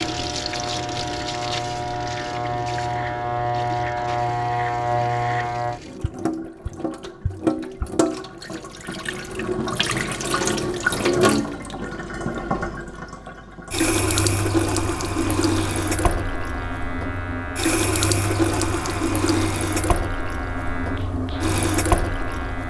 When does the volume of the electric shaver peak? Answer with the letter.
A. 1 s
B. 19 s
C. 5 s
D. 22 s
C.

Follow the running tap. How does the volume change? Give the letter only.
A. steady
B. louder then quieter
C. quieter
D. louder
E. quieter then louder
D.